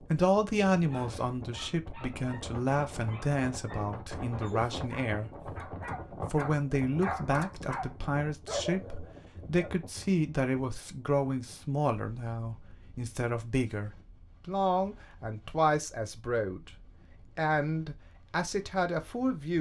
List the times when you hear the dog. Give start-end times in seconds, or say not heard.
0.8-9.8.